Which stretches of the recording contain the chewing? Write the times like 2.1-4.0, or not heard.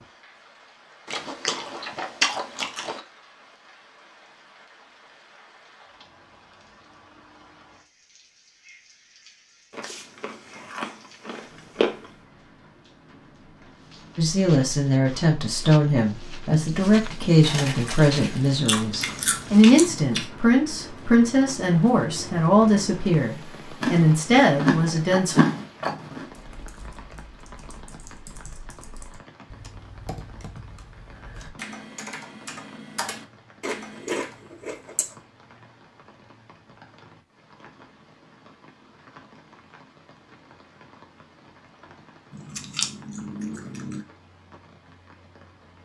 1.1-3.0, 9.7-12.1, 17.4-20.3, 23.8-26.3, 33.6-35.1, 42.3-44.0.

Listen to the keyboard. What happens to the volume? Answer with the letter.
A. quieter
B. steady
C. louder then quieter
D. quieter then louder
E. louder
E.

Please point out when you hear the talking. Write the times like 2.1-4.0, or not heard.
14.2-25.4.